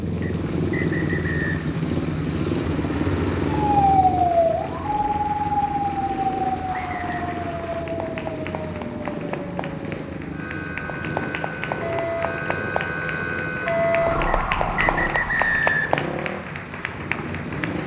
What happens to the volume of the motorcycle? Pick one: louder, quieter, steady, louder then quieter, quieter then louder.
quieter.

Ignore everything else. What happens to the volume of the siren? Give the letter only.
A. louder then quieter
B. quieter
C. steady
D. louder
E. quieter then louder
E.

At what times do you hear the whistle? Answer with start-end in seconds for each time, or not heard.
0.2-1.4, 6.7-7.4, 14.2-15.8.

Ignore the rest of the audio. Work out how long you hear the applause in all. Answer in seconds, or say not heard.
18 s.